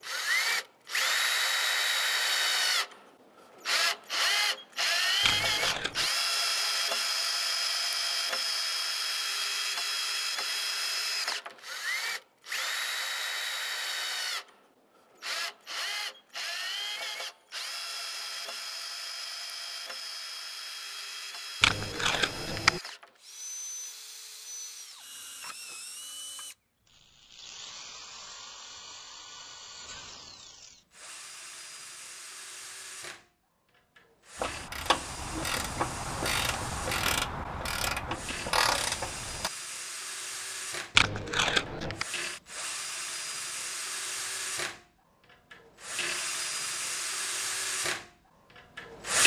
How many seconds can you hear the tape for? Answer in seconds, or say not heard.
3 s.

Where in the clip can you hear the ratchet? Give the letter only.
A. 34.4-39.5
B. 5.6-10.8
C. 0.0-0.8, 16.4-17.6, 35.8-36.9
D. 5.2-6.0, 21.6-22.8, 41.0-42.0
A.